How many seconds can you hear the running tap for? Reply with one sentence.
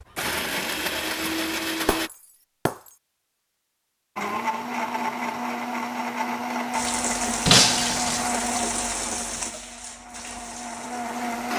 The running tap can be heard for 5 seconds in total.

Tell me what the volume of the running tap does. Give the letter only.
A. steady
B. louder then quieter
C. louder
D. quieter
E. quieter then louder
D.